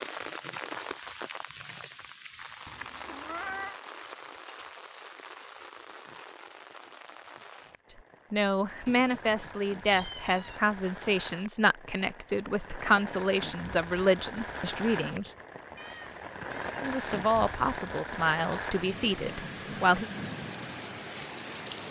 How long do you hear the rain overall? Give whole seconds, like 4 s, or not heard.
22 s.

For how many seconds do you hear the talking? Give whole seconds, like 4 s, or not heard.
11 s.